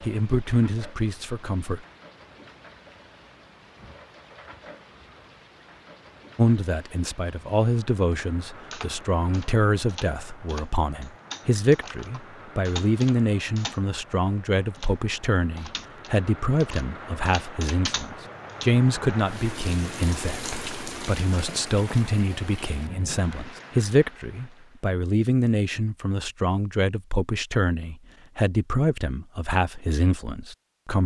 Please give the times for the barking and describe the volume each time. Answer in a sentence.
You can't hear the barking here.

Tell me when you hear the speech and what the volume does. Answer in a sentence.
The speech can be heard briefly from 0.0 to 1.9 s; and from 6.3 to 31.0 s, at a steady volume.